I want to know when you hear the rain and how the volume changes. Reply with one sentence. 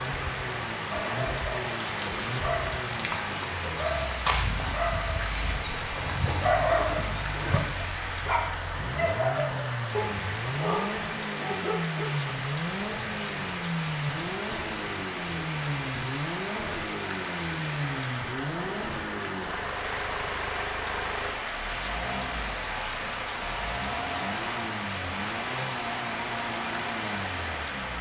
You can hear the rain from 0.0 to 27.9 s, at a steady volume.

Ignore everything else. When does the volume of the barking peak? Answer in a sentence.
The volume of the barking peaks at 7 seconds.